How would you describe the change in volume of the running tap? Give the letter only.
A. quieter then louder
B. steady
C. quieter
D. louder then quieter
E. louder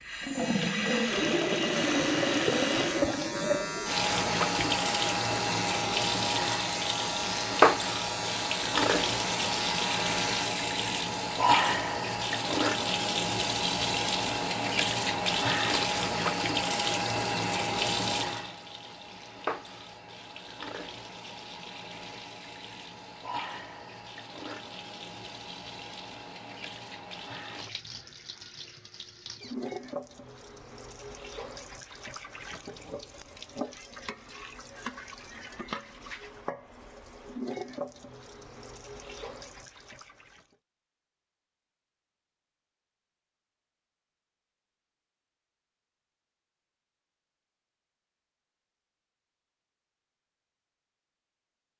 C.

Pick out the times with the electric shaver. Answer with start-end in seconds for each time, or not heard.
1.8-10.4.